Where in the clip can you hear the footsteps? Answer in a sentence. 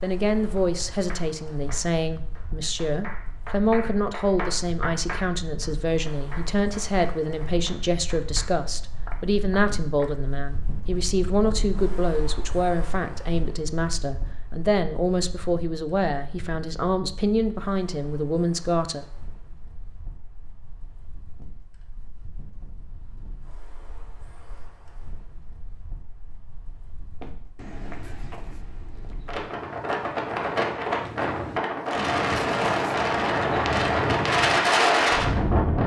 You can hear the footsteps from 27.2 to 34.6 s.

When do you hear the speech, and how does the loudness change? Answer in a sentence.
The speech can be heard from 0.0 to 19.1 s, at a steady volume.